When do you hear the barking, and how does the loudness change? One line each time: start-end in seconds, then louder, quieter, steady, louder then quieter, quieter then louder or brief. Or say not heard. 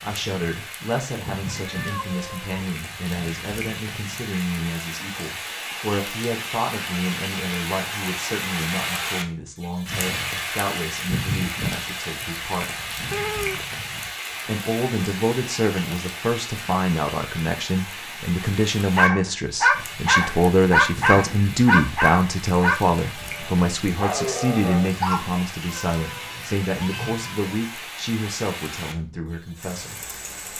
18.9-25.2 quieter.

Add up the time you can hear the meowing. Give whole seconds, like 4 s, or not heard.
4 s.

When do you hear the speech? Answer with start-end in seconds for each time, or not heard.
0.0-12.8, 14.4-30.0.